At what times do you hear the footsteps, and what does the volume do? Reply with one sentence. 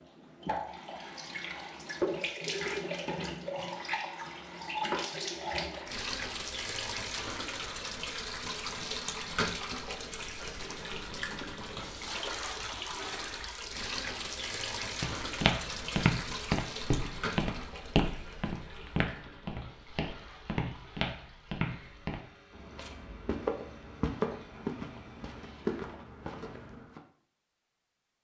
You can hear the footsteps from 15.0 to 27.0 s, getting quieter.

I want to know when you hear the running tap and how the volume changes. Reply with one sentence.
The running tap can be heard from 0.0 to 25.6 s, getting quieter.